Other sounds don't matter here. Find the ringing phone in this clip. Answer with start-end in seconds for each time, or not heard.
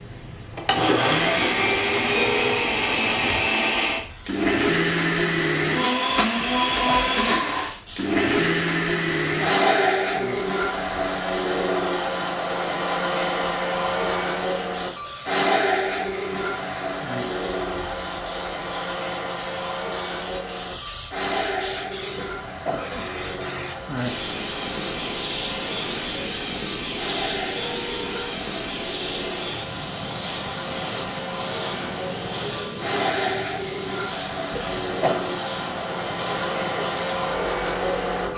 2.1-2.8, 27.6-28.4.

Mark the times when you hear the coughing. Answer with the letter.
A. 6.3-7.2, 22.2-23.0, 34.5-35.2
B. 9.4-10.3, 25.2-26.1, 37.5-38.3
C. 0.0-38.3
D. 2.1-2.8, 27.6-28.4
A.